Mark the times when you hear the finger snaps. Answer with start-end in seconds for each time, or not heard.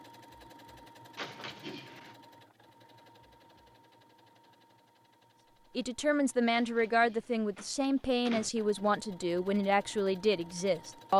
not heard.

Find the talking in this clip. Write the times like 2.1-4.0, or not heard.
5.8-11.1.